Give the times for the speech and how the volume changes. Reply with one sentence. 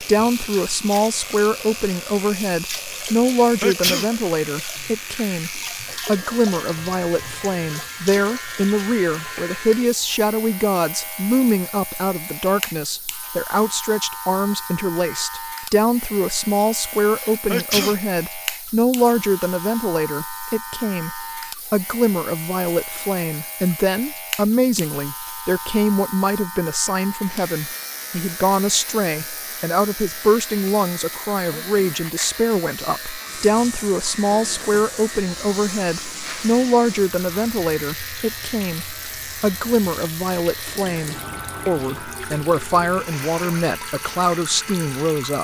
You can hear the speech from 0.0 to 45.3 s, at a steady volume.